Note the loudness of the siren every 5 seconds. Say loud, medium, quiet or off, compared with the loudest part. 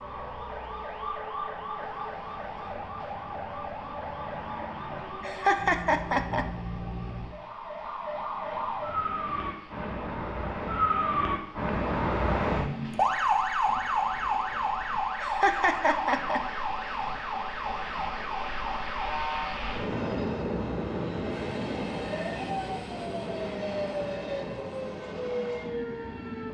medium, medium, loud, medium, medium, medium.